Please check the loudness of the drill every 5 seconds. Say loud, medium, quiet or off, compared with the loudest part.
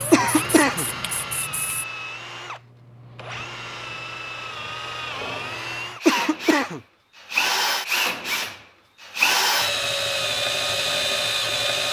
medium, loud, loud.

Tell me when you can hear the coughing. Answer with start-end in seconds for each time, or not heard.
0.1-0.8, 6.0-6.8.